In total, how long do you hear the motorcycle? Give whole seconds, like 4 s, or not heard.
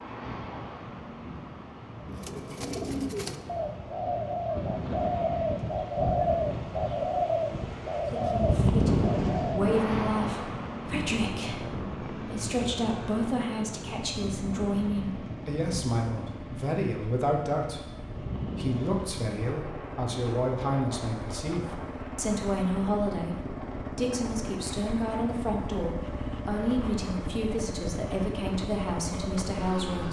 19 s.